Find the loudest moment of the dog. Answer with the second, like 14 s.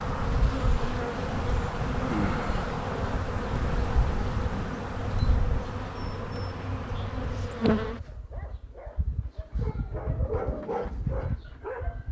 10 s.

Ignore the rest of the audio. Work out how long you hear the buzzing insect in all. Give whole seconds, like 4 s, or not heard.
12 s.